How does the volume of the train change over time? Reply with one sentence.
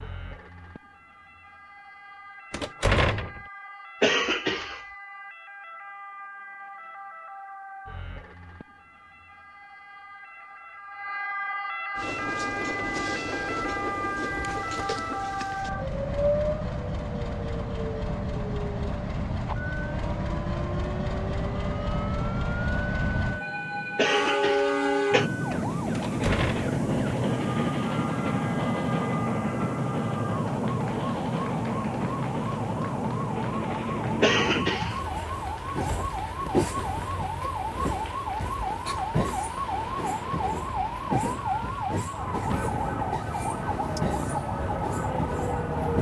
The volume of the train goes up, then down.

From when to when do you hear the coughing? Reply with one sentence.
The coughing can be heard from 4.0 to 4.8 s, from 23.9 to 25.3 s and from 34.2 to 35.0 s.